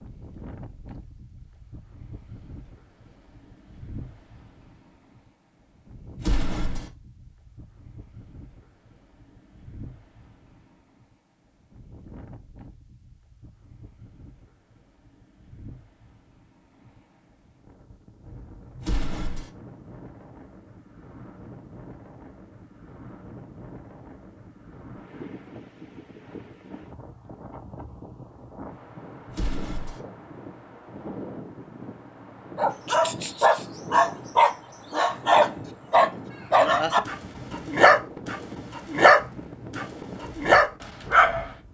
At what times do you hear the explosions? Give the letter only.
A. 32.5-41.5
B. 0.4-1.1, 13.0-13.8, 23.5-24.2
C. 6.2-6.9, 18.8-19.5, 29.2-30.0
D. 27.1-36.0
C.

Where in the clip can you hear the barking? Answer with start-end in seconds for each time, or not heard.
32.5-41.5.